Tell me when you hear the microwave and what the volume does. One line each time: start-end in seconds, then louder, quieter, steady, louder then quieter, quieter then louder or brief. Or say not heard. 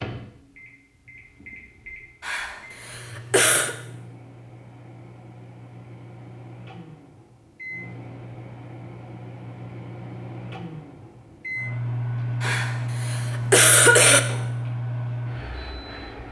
0.0-16.2 louder.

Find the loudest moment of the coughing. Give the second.
14 s.